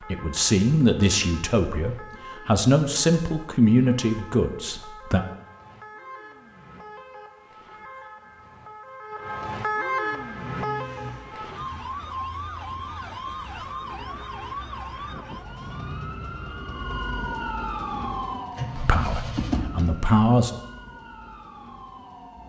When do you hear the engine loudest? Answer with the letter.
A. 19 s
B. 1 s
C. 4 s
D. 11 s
A.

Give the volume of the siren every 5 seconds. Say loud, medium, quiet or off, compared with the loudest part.
medium, loud, loud, loud, medium.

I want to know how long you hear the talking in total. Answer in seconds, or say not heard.
7 s.